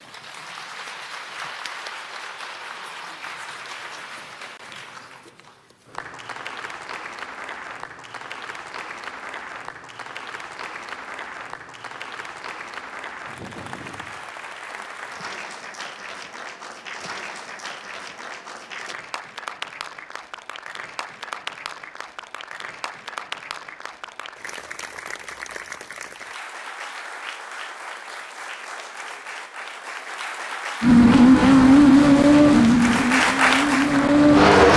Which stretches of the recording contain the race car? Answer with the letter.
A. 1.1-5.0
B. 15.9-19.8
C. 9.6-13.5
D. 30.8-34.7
D.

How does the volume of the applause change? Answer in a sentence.
The volume of the applause goes up.